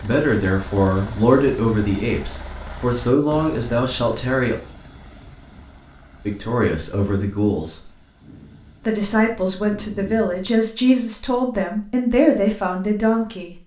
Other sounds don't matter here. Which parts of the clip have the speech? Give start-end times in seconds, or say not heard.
0.0-4.5, 6.2-7.9, 8.8-13.6.